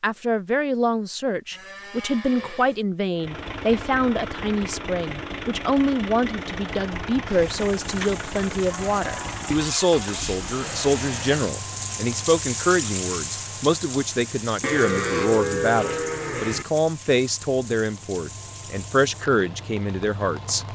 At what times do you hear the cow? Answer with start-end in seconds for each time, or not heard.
1.5-2.9, 8.7-10.2, 14.6-16.6.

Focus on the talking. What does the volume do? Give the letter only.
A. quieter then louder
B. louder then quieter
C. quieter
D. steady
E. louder
D.